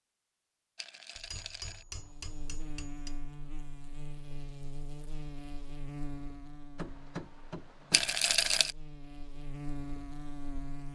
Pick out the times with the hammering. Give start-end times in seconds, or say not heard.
1.1-3.1, 6.8-8.2.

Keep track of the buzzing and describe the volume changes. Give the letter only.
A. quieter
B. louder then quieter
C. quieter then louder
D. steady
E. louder
C.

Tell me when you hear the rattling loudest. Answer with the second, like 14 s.
8 s.